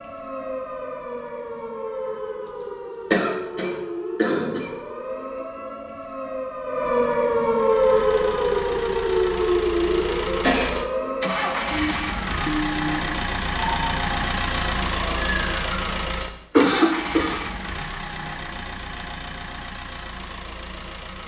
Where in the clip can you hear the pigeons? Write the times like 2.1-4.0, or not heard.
not heard.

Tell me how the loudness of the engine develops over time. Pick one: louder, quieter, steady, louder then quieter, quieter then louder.
louder then quieter.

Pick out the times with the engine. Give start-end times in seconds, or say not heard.
7.5-21.2.